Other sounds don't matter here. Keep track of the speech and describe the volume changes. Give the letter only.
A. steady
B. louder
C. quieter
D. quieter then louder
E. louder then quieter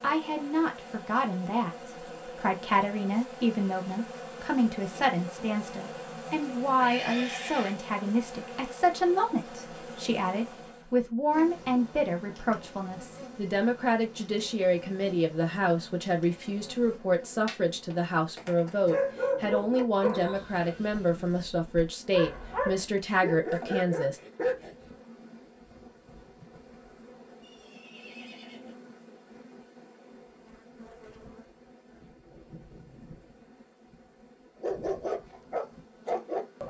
A.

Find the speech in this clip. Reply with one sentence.
The speech can be heard from 0.0 to 24.2 s.